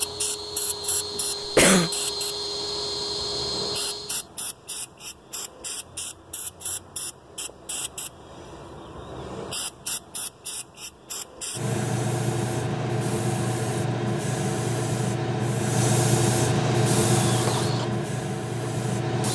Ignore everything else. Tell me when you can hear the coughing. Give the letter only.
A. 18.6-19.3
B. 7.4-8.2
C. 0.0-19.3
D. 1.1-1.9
D.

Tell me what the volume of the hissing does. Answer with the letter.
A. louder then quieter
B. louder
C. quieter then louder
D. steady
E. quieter
B.